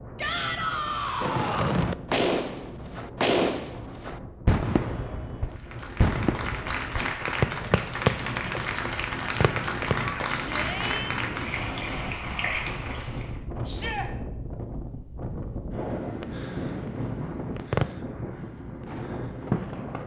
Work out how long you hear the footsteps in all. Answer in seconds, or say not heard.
not heard.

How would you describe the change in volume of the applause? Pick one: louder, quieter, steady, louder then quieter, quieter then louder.
steady.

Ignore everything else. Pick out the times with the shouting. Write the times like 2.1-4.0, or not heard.
0.1-1.8, 10.0-11.2, 13.7-14.1.